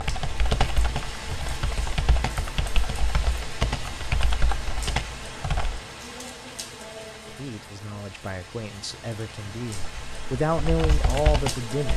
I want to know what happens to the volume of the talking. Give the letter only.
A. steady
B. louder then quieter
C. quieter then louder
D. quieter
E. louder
E.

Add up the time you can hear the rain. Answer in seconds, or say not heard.
12 s.